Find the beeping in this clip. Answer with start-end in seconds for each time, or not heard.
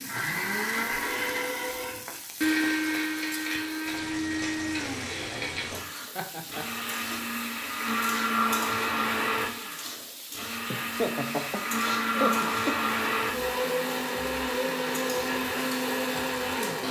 not heard.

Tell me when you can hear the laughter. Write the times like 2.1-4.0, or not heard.
6.2-6.8, 10.7-12.8.